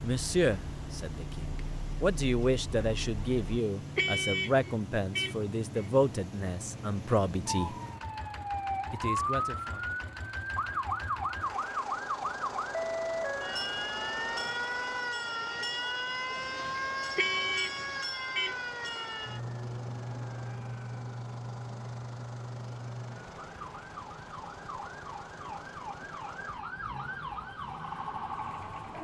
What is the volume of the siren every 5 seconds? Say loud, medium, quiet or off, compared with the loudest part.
quiet, loud, loud, loud, medium, medium.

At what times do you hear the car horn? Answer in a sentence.
You can hear the car horn from 4.0 to 5.9 s and from 17.1 to 19.1 s.